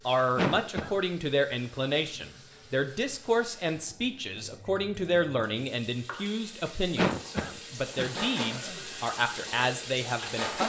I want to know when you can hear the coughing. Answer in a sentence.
The coughing can be heard from 0.3 to 0.9 s and from 7.0 to 8.8 s.